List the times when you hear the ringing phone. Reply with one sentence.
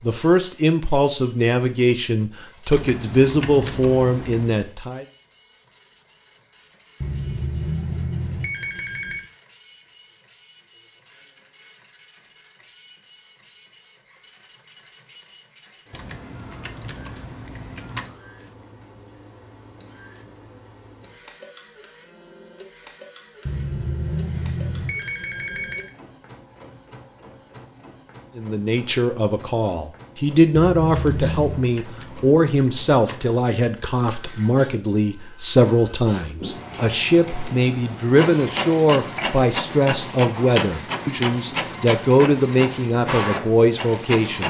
The ringing phone can be heard from 7.0 to 9.3 s, from 23.4 to 25.9 s and from 30.6 to 31.7 s.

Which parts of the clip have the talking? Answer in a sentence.
The talking can be heard from 0.0 to 5.0 s and from 28.4 to 44.4 s.